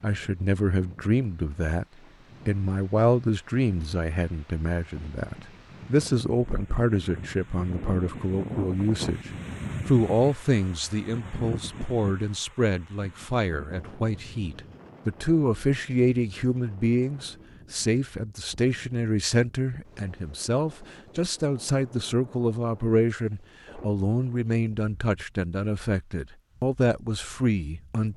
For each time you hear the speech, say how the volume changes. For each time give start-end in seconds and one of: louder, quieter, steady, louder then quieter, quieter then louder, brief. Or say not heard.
0.0-1.9 brief
2.5-28.1 steady.